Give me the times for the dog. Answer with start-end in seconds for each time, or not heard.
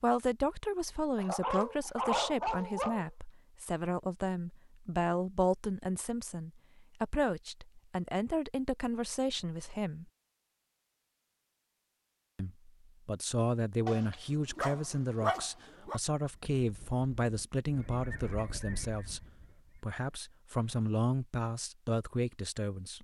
1.1-3.1, 13.8-16.0.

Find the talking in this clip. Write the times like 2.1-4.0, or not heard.
0.0-10.1, 12.3-22.9.